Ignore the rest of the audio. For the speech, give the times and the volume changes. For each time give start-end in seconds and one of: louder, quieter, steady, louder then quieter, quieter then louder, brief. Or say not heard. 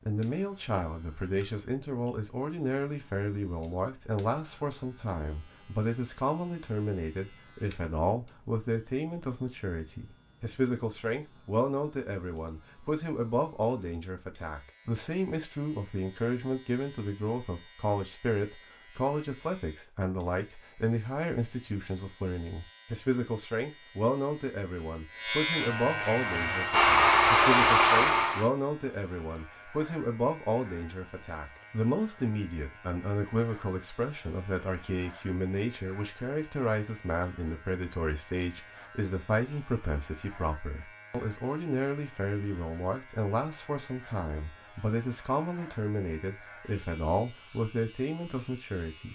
0.1-49.1 steady.